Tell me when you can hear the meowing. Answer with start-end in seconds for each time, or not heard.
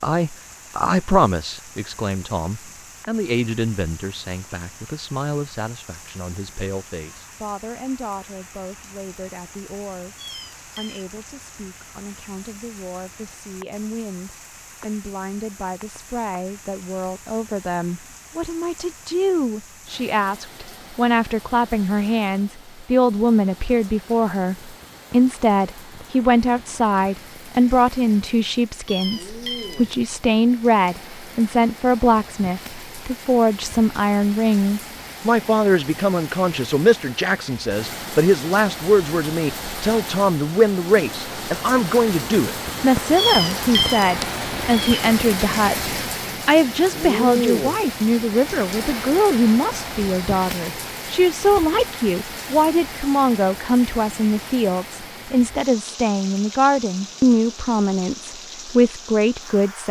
10.2-11.1, 28.9-29.9, 43.1-45.0.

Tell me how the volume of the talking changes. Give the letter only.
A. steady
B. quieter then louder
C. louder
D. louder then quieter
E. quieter
C.